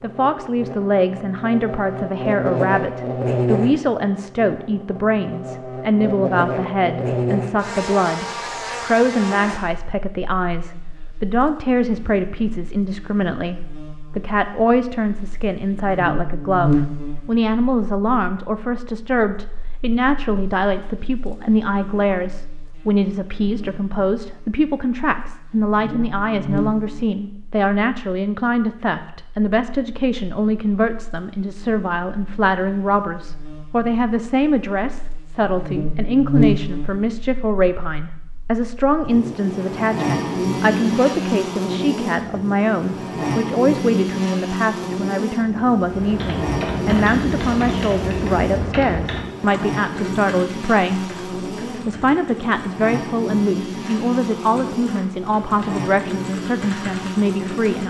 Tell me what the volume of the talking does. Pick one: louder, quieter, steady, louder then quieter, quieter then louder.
steady.